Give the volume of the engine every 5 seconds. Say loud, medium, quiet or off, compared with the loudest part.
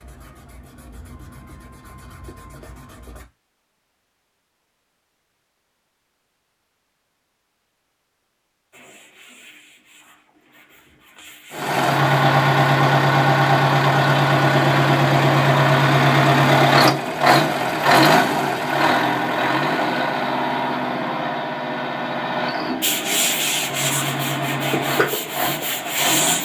off, off, loud, loud, medium, medium.